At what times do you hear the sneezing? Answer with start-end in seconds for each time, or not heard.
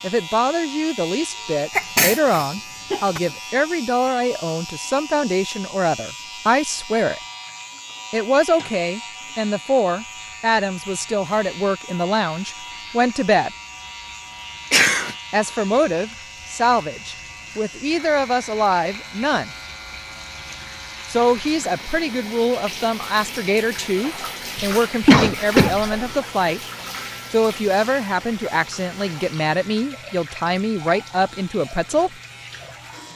1.8-3.2, 14.7-15.2, 24.6-25.9.